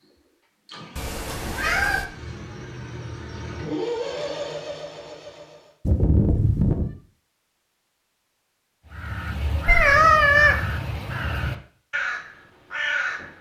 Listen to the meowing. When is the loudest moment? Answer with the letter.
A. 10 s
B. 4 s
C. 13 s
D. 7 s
A.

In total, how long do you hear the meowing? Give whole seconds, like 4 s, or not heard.
3 s.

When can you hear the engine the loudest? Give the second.
4 s.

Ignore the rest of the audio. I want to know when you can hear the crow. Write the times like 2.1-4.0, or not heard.
8.8-13.3.